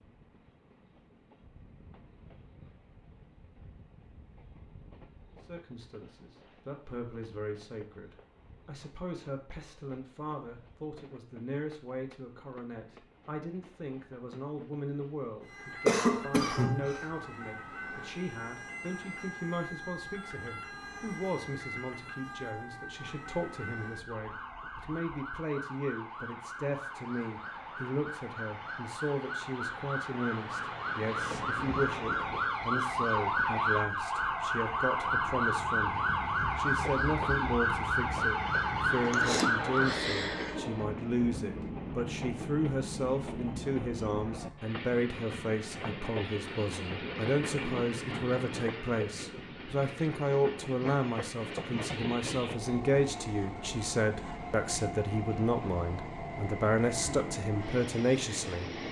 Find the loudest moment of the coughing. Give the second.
16 s.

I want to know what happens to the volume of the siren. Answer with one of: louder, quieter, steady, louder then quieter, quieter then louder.
louder.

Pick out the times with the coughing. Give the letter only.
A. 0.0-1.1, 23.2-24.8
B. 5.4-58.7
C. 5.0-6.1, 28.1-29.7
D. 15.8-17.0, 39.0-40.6
D.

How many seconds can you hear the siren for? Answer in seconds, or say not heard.
25 s.